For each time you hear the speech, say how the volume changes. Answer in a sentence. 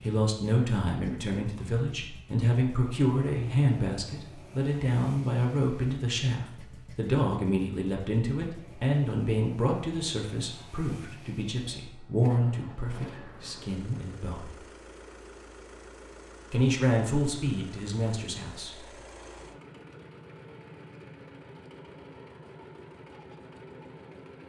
The speech can be heard from 0.0 to 14.6 s, at a steady volume; and briefly from 16.5 to 18.9 s.